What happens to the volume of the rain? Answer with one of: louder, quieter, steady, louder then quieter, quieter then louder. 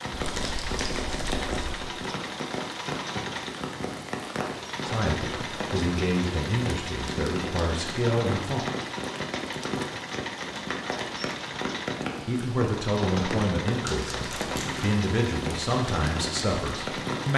steady.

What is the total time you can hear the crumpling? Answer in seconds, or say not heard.
3 s.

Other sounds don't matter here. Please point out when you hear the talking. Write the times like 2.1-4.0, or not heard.
4.8-8.7, 12.2-17.3.